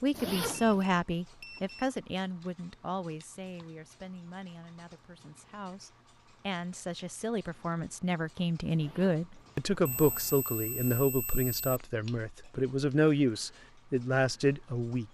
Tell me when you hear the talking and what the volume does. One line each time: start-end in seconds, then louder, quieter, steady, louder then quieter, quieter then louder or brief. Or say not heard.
0.0-15.0 quieter then louder.